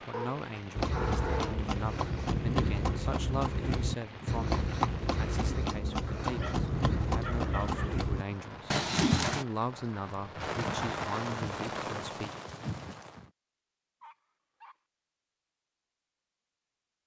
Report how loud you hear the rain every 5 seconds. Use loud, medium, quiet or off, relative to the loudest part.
medium, medium, loud, off.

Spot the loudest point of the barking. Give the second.
1 s.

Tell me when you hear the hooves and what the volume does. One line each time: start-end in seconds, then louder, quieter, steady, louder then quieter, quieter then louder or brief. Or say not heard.
0.8-9.4 steady.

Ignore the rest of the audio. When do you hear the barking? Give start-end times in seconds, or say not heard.
0.1-1.8, 6.0-8.1, 14.0-14.8.